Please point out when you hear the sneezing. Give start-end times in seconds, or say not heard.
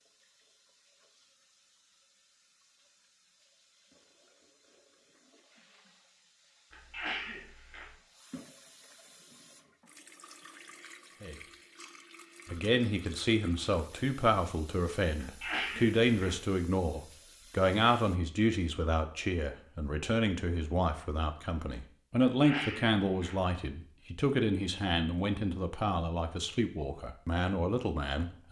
6.7-8.0, 15.2-16.4, 22.4-23.4.